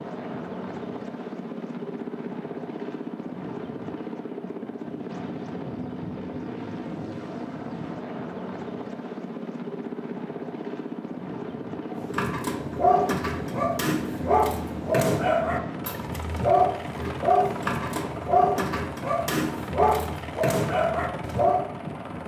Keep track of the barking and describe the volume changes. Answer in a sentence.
The volume of the barking stays about the same.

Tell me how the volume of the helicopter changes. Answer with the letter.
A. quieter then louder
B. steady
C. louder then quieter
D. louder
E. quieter
B.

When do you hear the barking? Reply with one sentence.
The barking can be heard from 11.9 to 21.6 s.